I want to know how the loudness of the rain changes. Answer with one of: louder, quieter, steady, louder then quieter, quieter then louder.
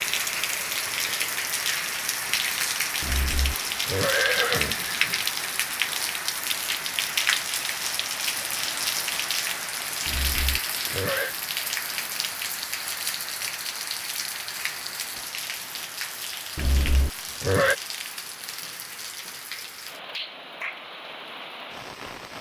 quieter.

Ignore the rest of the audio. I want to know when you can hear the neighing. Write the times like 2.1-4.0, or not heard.
3.0-5.2, 10.1-11.3, 16.6-17.8.